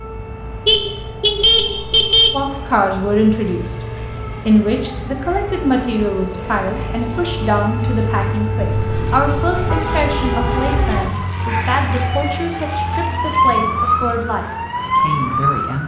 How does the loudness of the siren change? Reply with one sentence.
The loudness of the siren goes up.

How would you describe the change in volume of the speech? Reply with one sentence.
The loudness of the speech goes down.